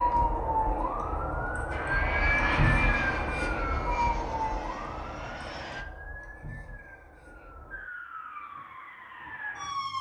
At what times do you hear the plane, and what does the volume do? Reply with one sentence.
The plane can be heard from 1.7 to 5.8 s, getting quieter.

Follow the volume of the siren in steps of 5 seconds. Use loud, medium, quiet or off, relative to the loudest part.
loud, medium.